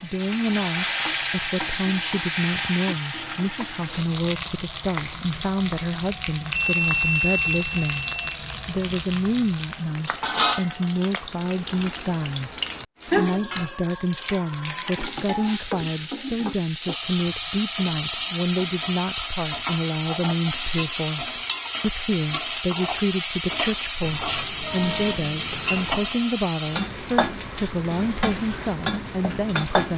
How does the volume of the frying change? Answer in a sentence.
The volume of the frying stays about the same.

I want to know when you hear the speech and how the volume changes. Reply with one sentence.
The speech can be heard from 0.0 to 8.1 s, at a steady volume; and from 8.7 to 29.9 s, at a steady volume.